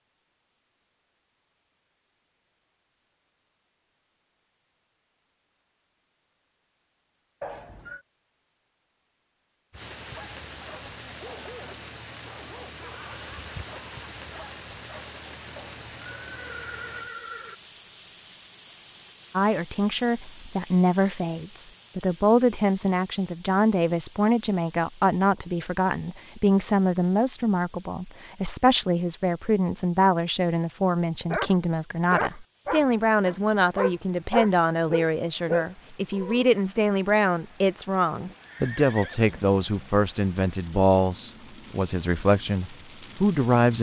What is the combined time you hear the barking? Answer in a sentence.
The barking can be heard for 10 seconds in total.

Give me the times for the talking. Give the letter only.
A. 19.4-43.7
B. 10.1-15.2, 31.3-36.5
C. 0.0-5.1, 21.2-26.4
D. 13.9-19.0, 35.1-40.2
A.